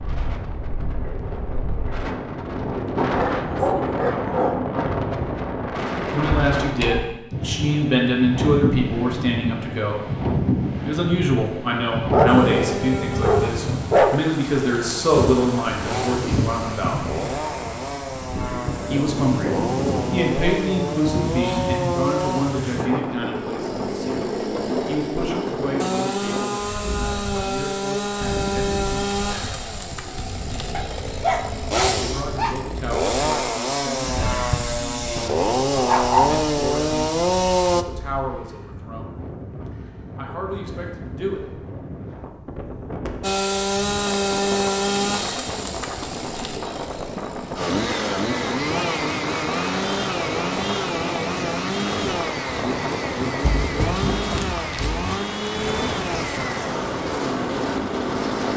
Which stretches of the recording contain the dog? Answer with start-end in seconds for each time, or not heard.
3.0-4.5, 12.1-14.2, 30.7-32.5, 35.1-36.4, 53.4-55.2.